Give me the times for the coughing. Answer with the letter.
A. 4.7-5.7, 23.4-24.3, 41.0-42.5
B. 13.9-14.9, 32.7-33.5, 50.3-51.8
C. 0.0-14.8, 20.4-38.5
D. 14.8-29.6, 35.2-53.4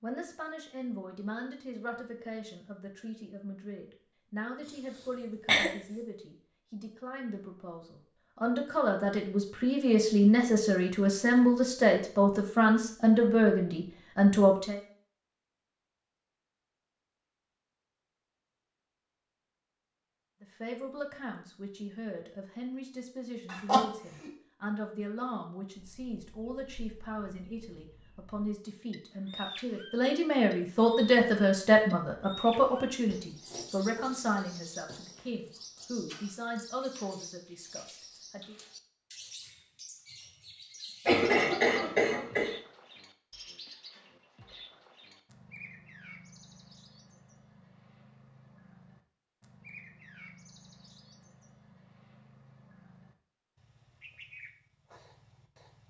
A.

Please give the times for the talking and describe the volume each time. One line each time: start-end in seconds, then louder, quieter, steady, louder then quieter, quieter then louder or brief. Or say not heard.
0.0-14.8 louder
20.4-38.5 louder then quieter.